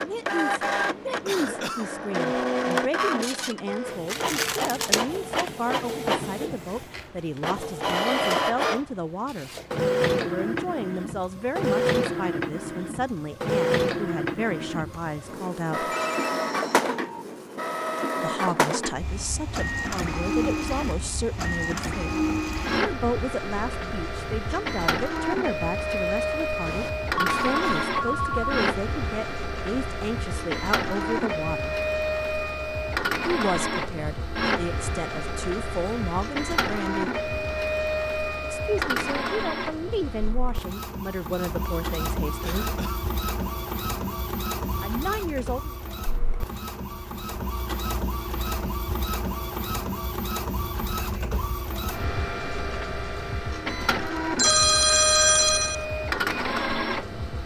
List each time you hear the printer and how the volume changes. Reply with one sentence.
You can hear the printer from 0.0 to 57.4 s, at a steady volume.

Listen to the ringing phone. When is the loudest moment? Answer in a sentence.
The loudest moment of the ringing phone is at 55 seconds.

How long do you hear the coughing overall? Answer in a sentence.
The coughing can be heard for 2 seconds in total.